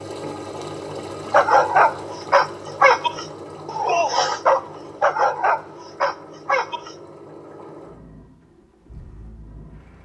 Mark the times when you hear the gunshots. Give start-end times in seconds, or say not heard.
not heard.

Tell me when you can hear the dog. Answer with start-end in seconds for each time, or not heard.
1.3-7.0.